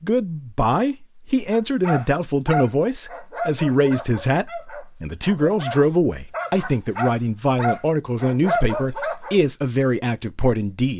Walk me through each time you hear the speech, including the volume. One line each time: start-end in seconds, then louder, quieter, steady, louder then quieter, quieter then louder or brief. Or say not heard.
0.0-10.9 steady.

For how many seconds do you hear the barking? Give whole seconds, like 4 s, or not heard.
8 s.